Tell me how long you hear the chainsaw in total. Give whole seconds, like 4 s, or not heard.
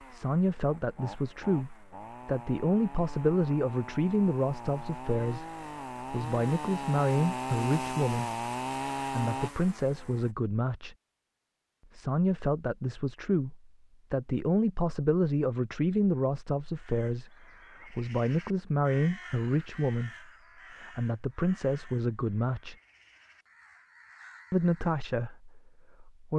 10 s.